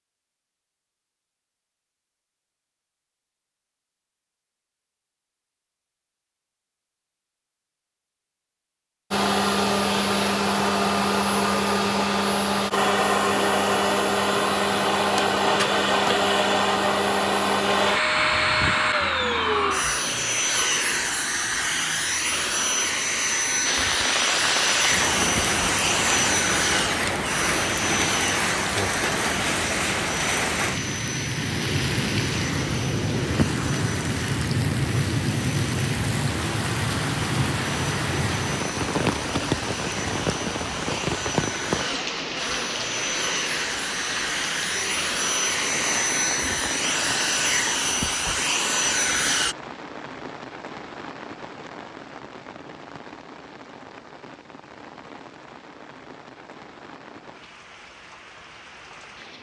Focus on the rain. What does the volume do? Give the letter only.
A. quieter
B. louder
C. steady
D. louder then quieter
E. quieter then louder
A.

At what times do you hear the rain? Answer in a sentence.
The rain can be heard from 23.6 to 59.3 s.